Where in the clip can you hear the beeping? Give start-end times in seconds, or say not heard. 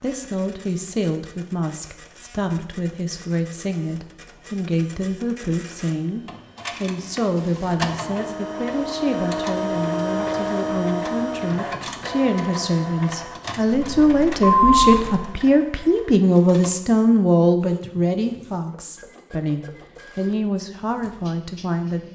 13.7-15.2.